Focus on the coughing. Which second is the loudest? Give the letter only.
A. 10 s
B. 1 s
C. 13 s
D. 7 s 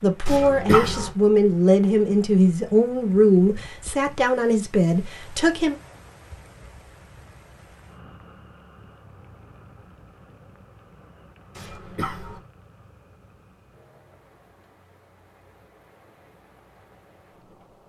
B.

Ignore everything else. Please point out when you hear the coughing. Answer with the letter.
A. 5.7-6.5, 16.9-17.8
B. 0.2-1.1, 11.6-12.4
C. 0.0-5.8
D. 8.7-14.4
B.